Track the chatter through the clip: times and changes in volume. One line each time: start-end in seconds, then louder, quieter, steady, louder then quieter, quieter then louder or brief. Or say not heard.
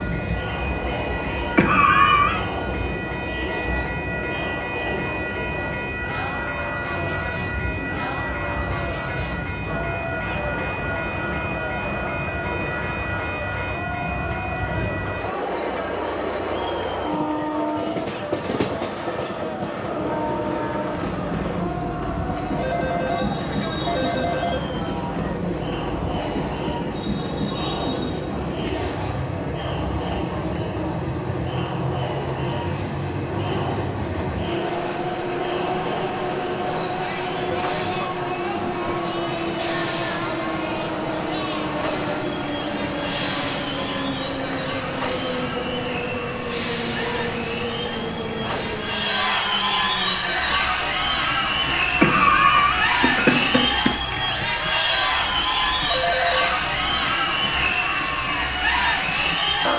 0.0-59.7 louder.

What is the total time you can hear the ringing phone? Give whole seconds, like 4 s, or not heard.
3 s.